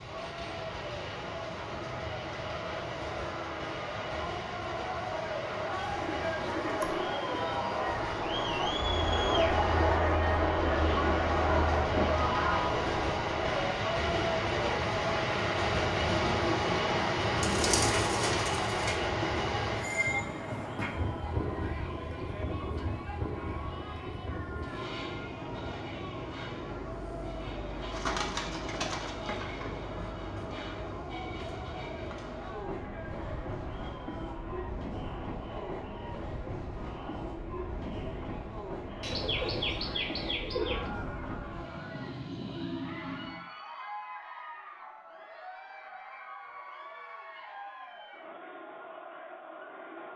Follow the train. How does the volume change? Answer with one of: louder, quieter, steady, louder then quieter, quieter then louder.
louder then quieter.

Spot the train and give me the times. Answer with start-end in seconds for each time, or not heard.
0.0-43.5.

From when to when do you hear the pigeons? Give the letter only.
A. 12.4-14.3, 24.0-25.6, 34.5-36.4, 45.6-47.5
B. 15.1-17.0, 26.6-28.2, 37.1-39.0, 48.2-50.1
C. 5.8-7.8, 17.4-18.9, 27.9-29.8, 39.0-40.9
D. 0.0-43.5
C.